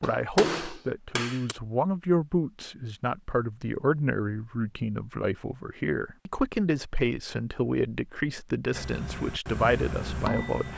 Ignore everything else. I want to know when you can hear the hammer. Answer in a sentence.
The hammer can be heard from 0.0 to 1.6 s and from 8.7 to 10.7 s.